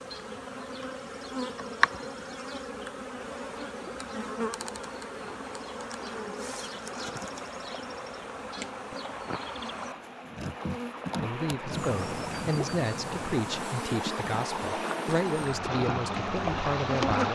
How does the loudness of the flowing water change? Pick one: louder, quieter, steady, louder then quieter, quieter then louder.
louder.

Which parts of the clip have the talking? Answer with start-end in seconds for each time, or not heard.
11.2-17.3.